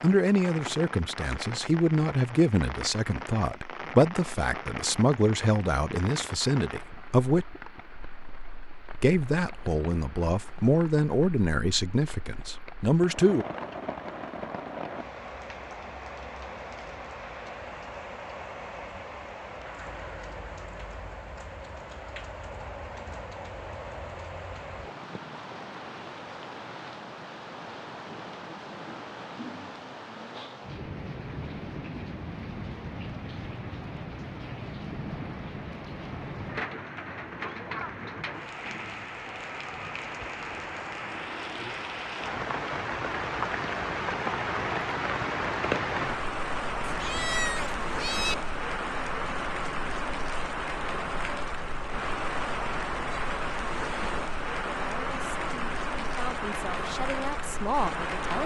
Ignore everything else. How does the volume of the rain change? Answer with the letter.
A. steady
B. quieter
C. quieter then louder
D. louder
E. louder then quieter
D.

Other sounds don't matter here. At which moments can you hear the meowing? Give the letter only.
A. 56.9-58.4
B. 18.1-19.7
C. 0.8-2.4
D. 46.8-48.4
D.